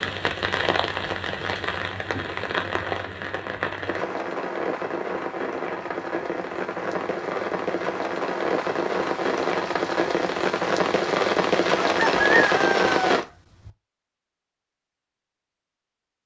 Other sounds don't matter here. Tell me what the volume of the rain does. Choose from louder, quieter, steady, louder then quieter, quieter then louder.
louder.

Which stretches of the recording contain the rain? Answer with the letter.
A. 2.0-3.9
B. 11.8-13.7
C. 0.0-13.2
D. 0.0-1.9
C.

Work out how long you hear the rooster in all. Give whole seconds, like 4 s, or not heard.
2 s.